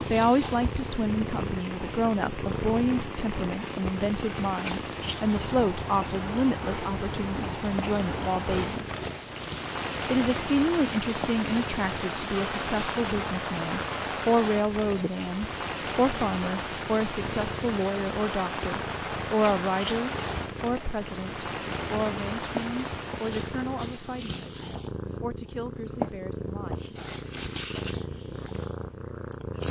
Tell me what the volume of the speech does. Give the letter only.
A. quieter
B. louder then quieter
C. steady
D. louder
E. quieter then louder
A.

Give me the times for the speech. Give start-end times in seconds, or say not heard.
0.1-8.8, 10.1-26.9.